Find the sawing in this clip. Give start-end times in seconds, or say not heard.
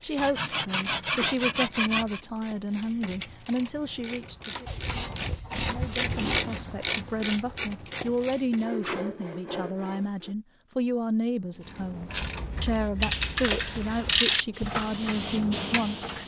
0.1-2.2, 4.7-6.4, 8.5-10.3, 12.3-14.2.